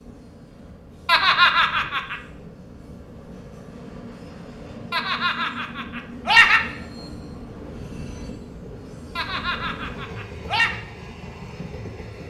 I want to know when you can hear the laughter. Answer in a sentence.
You can hear the laughter from 1.1 to 2.1 s, from 4.9 to 6.6 s and from 9.2 to 10.8 s.